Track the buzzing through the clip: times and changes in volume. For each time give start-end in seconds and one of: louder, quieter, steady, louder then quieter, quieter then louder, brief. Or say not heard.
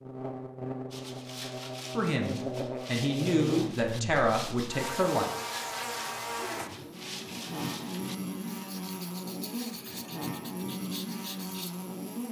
0.0-12.2 steady.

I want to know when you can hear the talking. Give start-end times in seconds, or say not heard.
1.9-5.3.